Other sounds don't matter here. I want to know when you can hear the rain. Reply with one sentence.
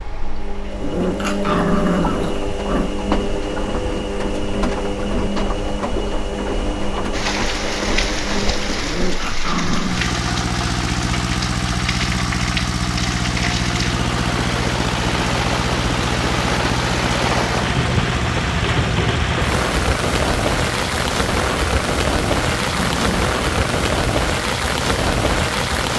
The rain can be heard from 7.1 to 25.9 s.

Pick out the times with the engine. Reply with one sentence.
The engine can be heard from 0.0 to 25.9 s.